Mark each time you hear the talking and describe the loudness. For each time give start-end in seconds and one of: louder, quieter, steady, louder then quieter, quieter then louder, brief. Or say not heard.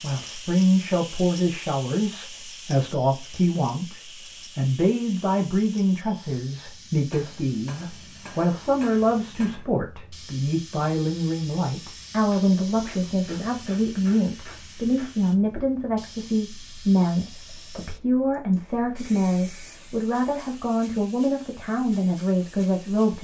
0.0-23.1 steady.